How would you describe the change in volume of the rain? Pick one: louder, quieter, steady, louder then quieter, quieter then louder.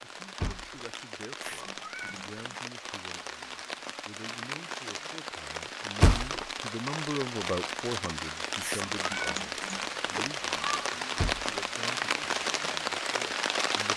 louder.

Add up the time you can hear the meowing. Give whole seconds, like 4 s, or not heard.
3 s.